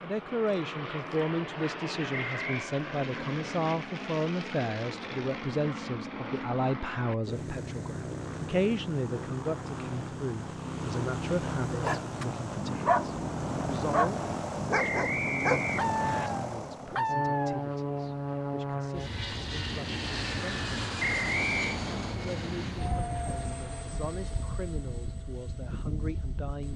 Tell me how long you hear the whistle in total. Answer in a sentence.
The whistle can be heard for 3 seconds in total.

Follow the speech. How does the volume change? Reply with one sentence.
The loudness of the speech goes down.